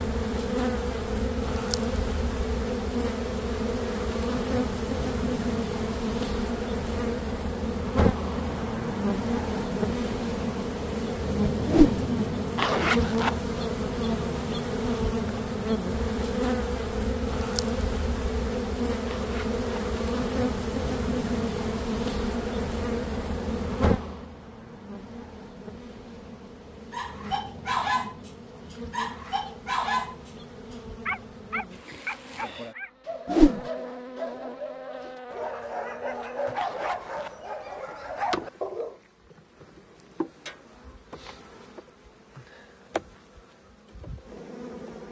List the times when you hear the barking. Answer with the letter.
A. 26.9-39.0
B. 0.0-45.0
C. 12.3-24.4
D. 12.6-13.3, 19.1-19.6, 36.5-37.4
A.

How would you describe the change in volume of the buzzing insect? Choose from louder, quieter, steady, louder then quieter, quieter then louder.
quieter.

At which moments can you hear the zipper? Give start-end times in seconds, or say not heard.
12.6-13.3, 19.1-19.6, 36.5-37.4.